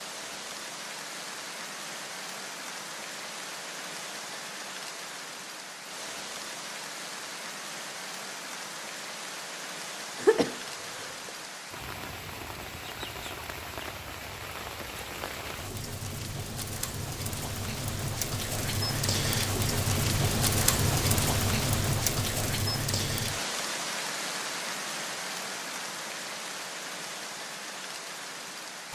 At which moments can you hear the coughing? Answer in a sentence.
You can hear the coughing from 10.2 to 11.3 s.